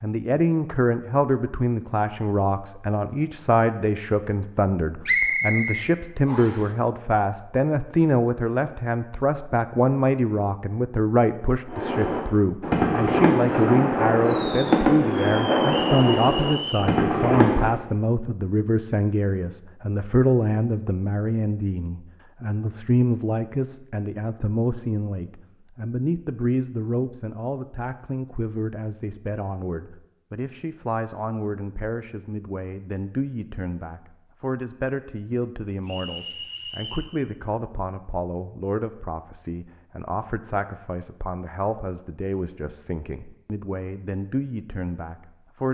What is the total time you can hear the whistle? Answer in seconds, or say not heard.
4 s.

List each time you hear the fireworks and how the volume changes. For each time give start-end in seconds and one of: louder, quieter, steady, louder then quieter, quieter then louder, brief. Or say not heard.
11.7-17.8 steady.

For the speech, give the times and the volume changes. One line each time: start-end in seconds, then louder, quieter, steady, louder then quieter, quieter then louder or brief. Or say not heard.
0.0-45.6 quieter.